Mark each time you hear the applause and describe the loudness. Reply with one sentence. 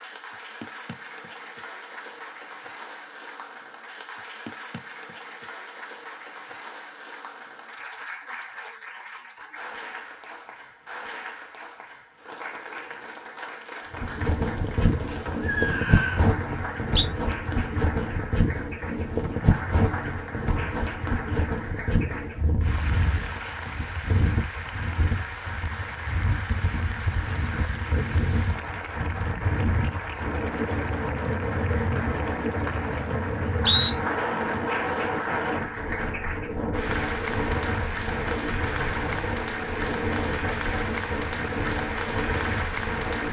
You can hear the applause from 0.0 to 43.2 s, getting louder.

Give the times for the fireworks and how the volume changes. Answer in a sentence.
The fireworks can't be heard in this clip.